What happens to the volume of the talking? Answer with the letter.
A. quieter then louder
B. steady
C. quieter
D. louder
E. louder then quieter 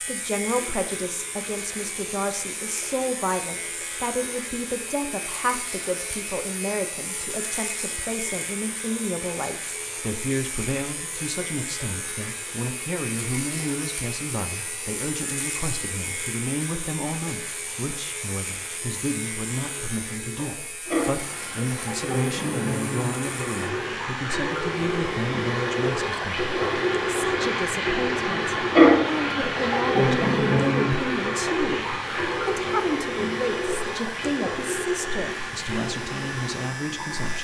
B.